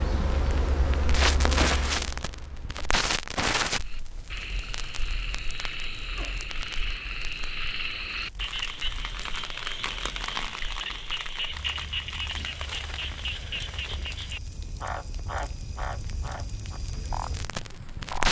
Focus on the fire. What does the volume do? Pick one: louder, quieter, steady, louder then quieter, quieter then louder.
quieter then louder.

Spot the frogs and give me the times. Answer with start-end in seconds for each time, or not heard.
3.8-18.2.